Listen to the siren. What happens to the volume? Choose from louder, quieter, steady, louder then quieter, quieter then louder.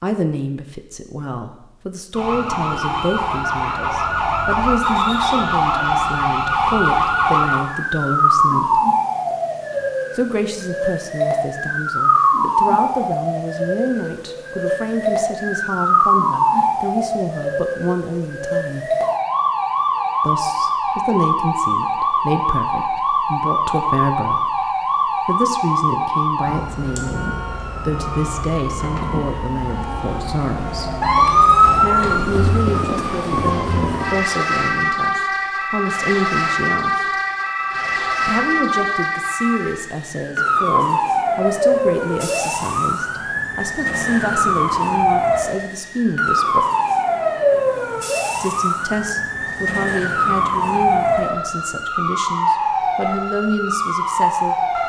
steady.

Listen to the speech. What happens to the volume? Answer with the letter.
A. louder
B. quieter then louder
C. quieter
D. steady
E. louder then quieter
D.